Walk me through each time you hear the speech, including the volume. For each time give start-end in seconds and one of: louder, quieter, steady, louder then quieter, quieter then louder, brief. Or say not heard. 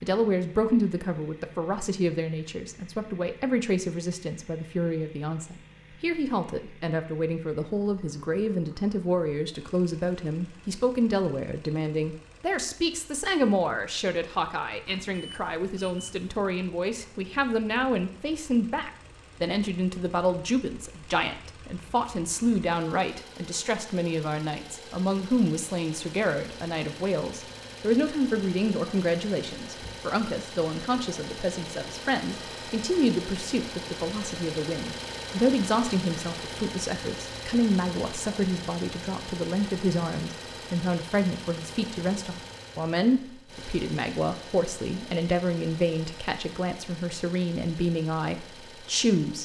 0.0-49.4 steady.